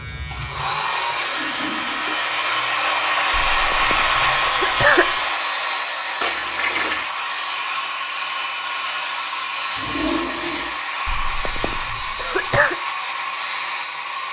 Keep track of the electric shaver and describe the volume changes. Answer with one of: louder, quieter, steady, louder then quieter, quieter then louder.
louder.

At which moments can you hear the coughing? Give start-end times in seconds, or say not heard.
3.3-5.2, 11.1-12.8.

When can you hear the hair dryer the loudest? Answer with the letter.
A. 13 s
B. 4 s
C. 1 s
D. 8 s
B.